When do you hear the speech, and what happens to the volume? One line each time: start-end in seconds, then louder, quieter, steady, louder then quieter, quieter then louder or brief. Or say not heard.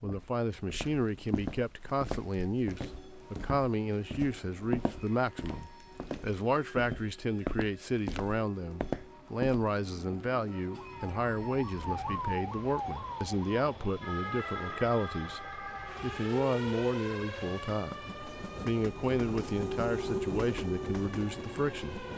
0.0-22.1 steady.